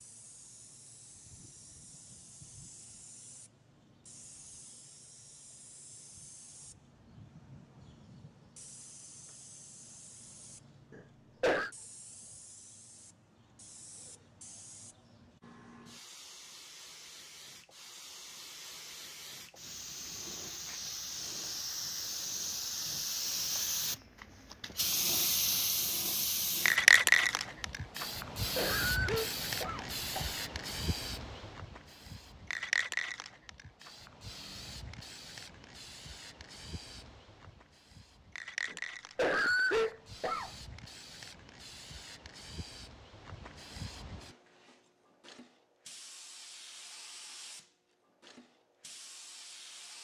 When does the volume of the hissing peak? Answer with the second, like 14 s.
27 s.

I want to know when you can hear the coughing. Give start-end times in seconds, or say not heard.
10.9-11.7, 28.1-30.3, 38.7-40.5.